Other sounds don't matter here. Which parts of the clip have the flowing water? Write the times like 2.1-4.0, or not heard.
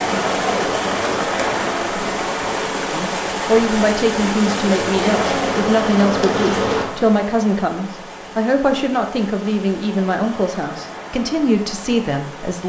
0.0-12.6.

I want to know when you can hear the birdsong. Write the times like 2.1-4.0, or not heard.
not heard.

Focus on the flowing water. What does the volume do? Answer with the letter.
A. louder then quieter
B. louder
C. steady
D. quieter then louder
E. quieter
E.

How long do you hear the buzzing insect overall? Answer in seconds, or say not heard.
4 s.